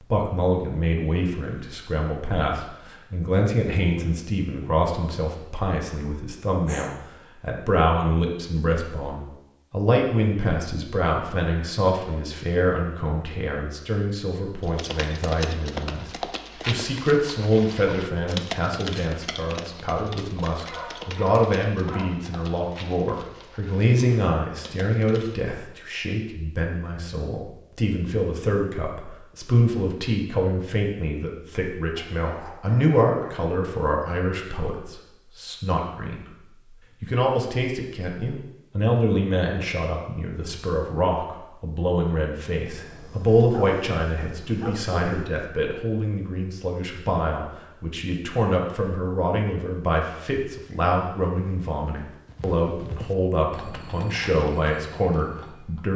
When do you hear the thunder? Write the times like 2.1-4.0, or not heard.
not heard.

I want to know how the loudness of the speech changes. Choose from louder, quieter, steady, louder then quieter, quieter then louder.
steady.